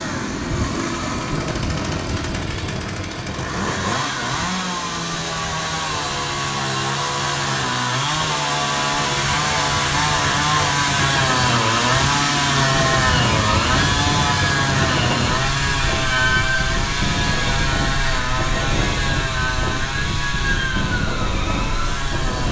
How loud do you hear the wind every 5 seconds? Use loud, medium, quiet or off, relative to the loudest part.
loud, medium, loud, loud, loud.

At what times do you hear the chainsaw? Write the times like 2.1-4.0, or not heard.
0.0-22.4.